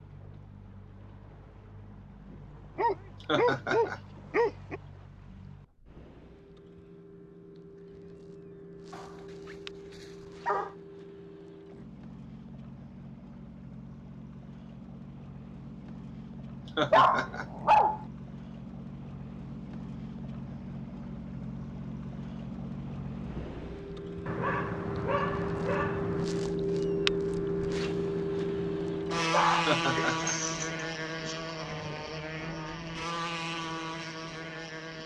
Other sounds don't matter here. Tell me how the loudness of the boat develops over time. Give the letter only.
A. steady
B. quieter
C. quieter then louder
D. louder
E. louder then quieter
D.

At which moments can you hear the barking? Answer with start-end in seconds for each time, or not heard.
2.8-4.8, 8.9-10.7, 16.9-18.1, 24.2-26.2, 29.3-31.4.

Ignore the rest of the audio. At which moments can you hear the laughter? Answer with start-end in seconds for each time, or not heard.
3.2-4.0, 16.6-17.4, 29.6-30.4.